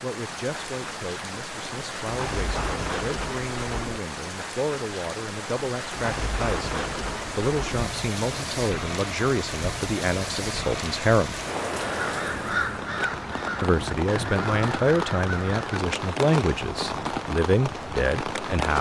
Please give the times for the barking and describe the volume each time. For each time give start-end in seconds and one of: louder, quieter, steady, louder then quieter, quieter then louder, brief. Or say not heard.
not heard.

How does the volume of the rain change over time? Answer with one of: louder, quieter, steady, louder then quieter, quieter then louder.
steady.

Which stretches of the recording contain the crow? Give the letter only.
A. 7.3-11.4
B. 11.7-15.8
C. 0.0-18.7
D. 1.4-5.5
B.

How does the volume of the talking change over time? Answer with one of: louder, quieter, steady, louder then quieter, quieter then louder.
louder.